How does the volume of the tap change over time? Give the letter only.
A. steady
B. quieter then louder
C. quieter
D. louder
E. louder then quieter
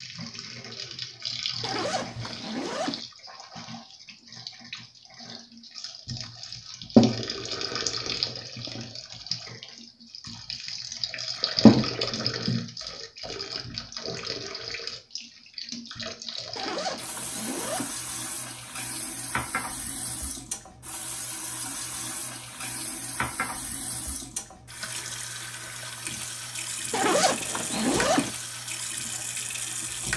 E.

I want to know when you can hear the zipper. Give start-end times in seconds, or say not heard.
1.6-3.0, 16.6-17.9, 26.9-28.3.